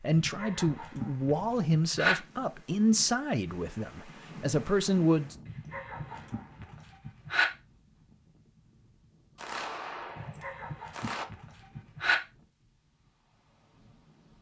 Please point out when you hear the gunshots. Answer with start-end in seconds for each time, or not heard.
9.3-11.2.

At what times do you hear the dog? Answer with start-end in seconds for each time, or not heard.
0.1-2.1, 5.5-7.5, 10.2-12.2.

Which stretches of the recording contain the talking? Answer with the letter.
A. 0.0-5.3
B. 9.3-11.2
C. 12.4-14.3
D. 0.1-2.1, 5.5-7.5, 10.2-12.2
A.